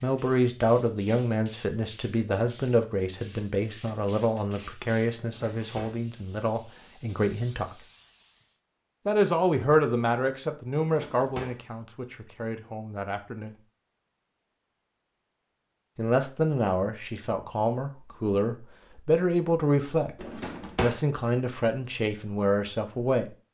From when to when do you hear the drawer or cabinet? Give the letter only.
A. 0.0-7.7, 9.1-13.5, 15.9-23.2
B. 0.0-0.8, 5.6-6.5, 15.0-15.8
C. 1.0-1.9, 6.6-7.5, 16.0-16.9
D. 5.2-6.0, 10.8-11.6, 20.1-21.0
D.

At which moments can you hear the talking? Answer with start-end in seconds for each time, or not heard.
0.0-7.7, 9.1-13.5, 15.9-23.2.